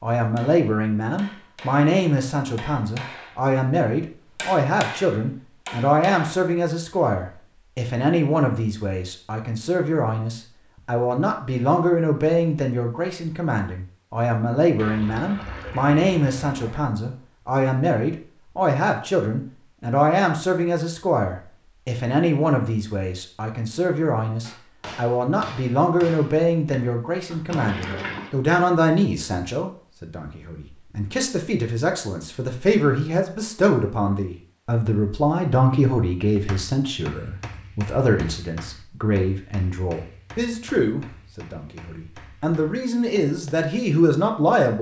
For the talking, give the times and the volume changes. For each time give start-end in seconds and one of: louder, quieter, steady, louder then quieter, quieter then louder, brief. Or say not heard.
0.0-44.7 steady.